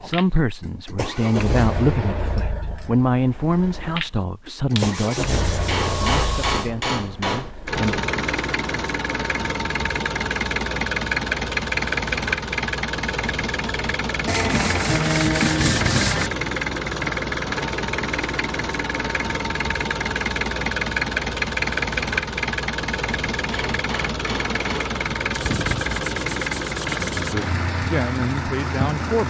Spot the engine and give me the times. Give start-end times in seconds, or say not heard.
0.0-29.2.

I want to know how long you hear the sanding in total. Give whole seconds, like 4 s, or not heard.
6 s.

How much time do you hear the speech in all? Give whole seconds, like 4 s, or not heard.
10 s.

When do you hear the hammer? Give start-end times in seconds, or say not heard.
5.7-7.5, 23.5-24.9.